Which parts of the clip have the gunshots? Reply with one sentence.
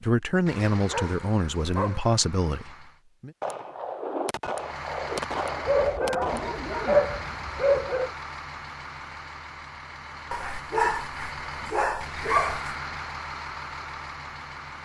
The gunshots can be heard from 3.4 to 6.5 s.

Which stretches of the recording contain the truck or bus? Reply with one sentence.
You can hear the truck or bus from 0.0 to 3.0 s and from 4.5 to 14.7 s.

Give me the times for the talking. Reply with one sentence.
You can hear the talking from 0.0 to 3.3 s.